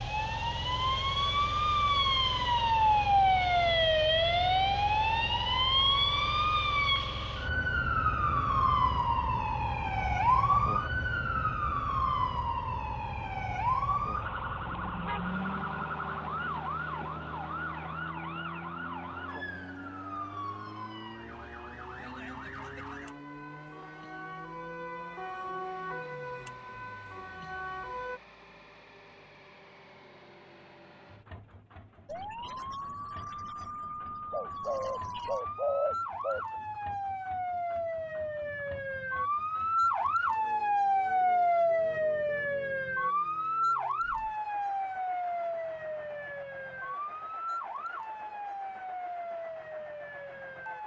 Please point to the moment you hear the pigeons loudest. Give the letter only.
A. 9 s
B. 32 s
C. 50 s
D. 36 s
D.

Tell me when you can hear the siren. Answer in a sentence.
The siren can be heard from 0.0 to 28.2 s and from 32.0 to 50.8 s.